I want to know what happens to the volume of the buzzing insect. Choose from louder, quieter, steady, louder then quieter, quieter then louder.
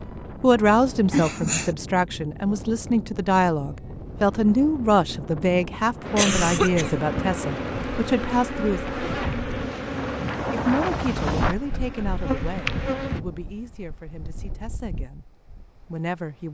steady.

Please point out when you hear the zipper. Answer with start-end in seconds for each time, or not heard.
8.8-9.8.